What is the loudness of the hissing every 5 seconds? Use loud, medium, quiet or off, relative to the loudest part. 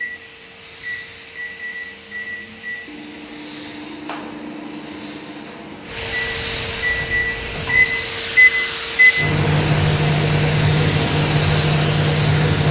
quiet, loud, loud.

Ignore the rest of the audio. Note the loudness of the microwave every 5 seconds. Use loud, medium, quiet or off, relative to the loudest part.
quiet, loud, loud.